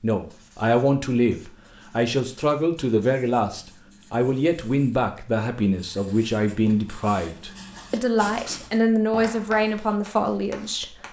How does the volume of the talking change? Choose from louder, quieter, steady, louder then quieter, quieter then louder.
steady.